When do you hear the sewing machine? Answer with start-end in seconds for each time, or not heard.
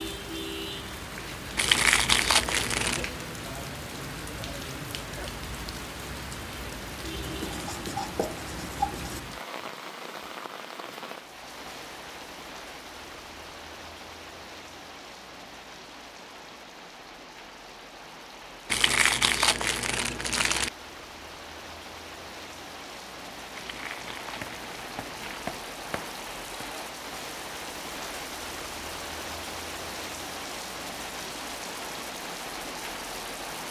not heard.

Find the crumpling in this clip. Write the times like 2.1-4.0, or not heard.
1.6-3.1, 18.6-20.7, 23.6-25.6.